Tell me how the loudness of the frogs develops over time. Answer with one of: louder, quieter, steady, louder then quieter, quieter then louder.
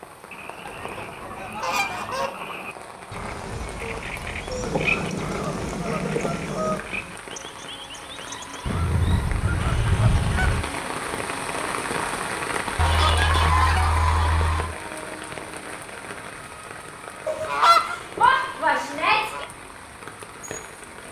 louder then quieter.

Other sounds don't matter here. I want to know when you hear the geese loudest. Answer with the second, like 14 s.
18 s.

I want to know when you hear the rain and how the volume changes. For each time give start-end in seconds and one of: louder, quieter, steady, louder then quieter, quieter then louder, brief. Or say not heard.
0.0-21.0 louder then quieter.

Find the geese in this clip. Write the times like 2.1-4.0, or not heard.
0.7-2.3, 4.6-6.8, 8.7-10.7, 12.8-14.7, 17.2-19.4.